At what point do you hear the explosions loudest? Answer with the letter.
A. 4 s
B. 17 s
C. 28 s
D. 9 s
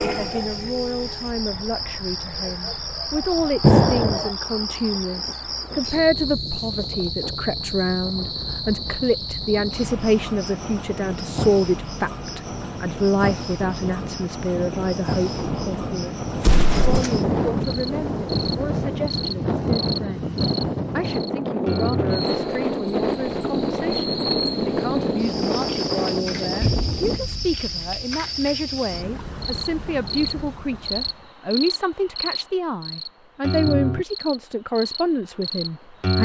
A.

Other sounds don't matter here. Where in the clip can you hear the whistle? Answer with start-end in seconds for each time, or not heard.
not heard.